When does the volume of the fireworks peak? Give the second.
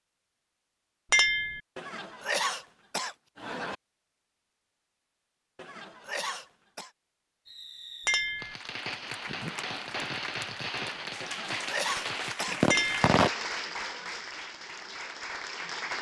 13 s.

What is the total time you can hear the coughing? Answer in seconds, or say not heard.
5 s.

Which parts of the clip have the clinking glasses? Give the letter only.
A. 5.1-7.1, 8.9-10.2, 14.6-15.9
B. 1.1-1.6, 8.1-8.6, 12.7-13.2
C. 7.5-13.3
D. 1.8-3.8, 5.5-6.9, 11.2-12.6
B.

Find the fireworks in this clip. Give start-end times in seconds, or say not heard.
7.5-13.3.